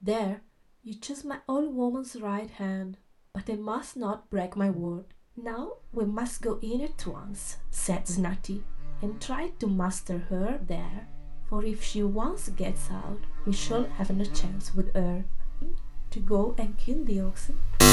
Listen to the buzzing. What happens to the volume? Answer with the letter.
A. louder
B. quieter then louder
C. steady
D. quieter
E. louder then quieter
E.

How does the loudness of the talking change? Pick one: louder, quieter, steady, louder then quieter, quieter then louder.
steady.